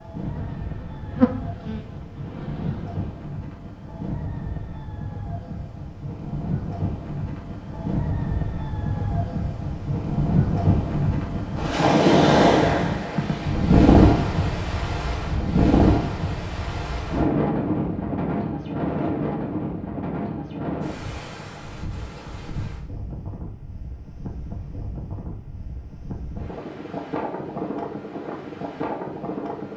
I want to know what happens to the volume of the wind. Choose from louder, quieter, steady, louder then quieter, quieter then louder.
louder then quieter.